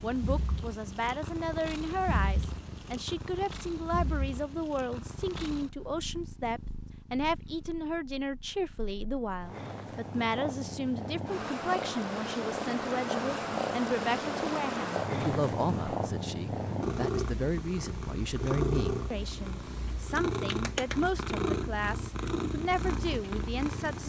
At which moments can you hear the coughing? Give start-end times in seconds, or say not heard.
not heard.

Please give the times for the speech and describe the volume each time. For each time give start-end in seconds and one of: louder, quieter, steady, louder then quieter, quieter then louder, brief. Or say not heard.
0.0-24.0 steady.